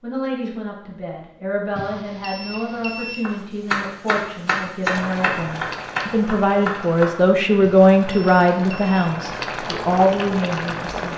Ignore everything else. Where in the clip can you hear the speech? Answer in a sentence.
The speech can be heard from 0.0 to 11.1 s.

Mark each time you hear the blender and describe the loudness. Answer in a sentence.
You can't hear the blender here.